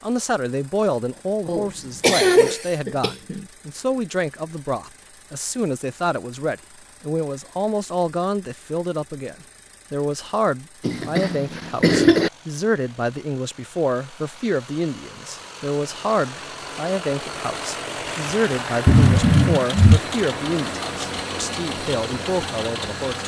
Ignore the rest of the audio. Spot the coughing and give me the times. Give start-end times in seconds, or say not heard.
1.4-3.5, 10.8-12.3, 18.9-20.0.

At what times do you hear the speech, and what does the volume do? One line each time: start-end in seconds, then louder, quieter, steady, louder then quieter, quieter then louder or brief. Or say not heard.
0.0-23.2 steady.